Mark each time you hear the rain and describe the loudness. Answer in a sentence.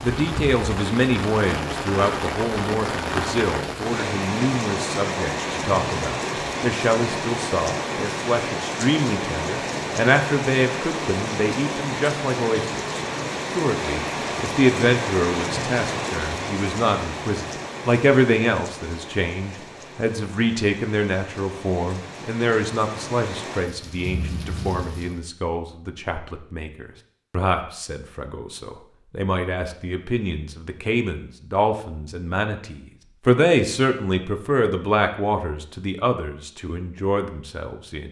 You can hear the rain from 0.0 to 25.2 s, getting quieter.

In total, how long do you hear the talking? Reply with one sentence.
You can hear the talking for 38 seconds altogether.